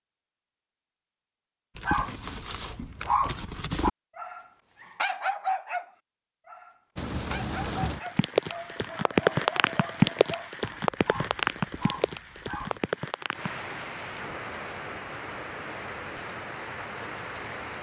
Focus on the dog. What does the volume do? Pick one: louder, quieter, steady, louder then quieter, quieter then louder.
quieter.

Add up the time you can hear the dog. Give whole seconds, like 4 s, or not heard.
11 s.